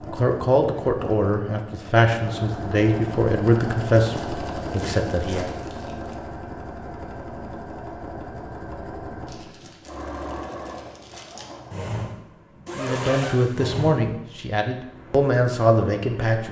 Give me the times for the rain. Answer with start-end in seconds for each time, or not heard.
not heard.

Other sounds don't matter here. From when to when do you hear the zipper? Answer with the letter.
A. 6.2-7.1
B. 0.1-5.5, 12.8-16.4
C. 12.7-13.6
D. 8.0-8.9
C.